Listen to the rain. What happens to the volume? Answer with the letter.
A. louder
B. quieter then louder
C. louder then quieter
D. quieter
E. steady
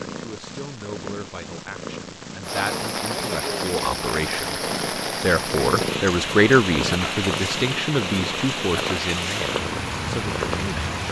E.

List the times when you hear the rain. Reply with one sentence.
The rain can be heard from 2.4 to 11.0 s.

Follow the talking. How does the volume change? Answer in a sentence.
The volume of the talking goes up, then down.